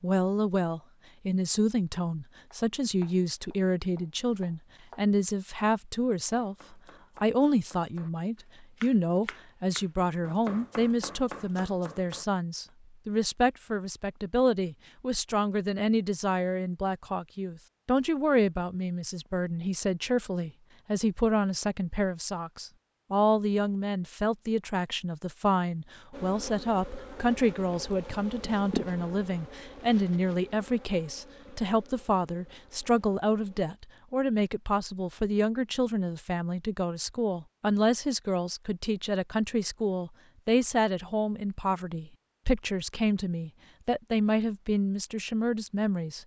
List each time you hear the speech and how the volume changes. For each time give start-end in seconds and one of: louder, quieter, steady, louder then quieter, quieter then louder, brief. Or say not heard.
0.0-46.2 steady.